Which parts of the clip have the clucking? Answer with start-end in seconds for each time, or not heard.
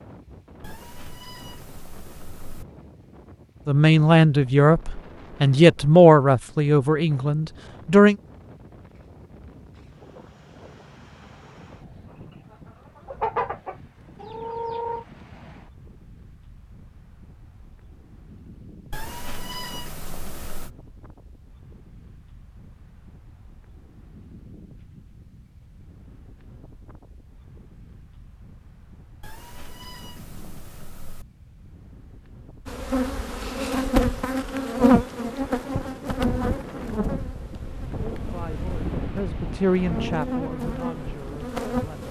12.1-15.1.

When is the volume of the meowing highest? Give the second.
20 s.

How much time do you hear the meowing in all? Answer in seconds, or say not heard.
6 s.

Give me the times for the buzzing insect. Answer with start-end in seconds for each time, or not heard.
32.6-42.0.